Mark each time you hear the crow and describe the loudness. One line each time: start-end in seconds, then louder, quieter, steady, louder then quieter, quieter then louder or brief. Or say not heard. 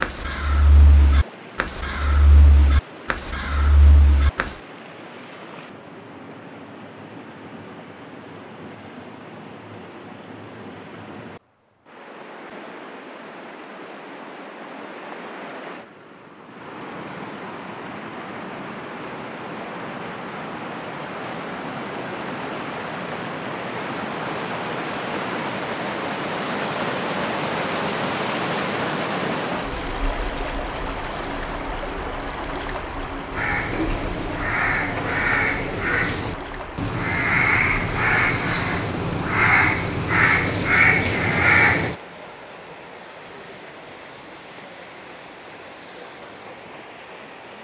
0.0-4.5 steady
33.3-42.0 louder.